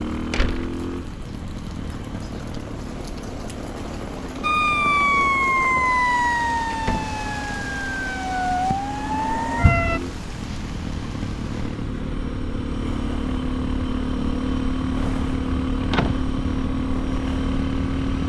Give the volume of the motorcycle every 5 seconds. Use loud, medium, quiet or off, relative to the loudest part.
medium, medium, loud, loud.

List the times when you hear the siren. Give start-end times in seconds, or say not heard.
4.4-10.0.